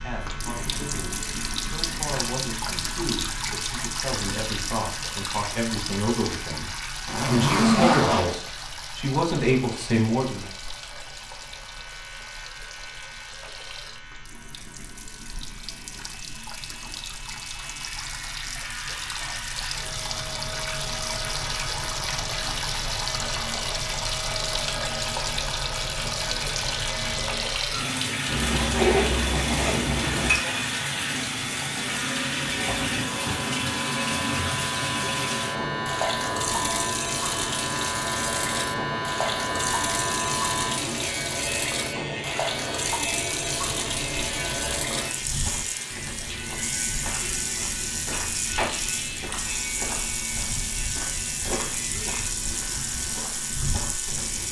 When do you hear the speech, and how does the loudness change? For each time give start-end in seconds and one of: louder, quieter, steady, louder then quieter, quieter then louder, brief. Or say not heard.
0.0-10.4 louder.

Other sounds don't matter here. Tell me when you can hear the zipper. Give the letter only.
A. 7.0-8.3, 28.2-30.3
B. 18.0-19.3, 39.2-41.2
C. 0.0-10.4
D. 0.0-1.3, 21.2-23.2
A.